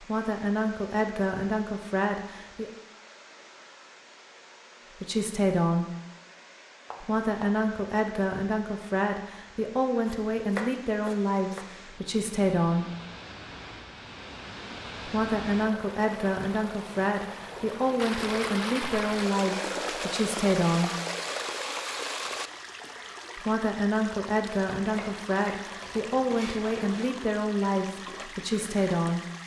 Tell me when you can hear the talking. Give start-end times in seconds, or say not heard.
0.0-2.7, 5.0-5.9, 7.0-12.8, 15.1-20.9, 23.4-29.2.